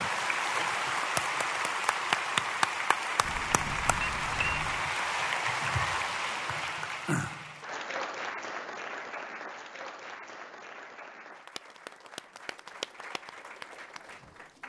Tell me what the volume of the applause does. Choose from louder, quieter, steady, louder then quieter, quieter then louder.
quieter.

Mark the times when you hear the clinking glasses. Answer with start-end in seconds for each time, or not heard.
3.2-4.8.